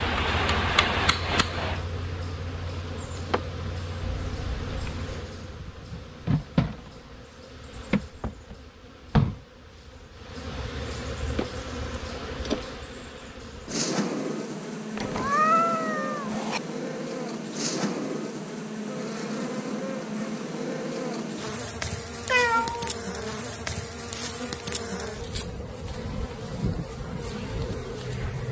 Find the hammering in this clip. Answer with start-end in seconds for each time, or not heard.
0.0-1.8.